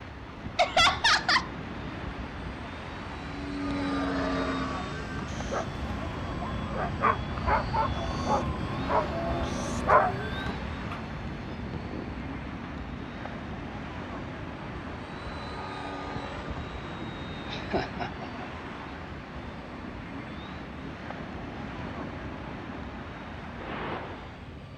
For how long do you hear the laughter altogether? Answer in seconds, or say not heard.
2 s.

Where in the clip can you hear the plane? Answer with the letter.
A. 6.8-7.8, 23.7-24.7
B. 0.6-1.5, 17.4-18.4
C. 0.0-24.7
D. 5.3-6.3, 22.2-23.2
C.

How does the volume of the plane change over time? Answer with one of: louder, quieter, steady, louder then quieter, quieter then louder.
quieter.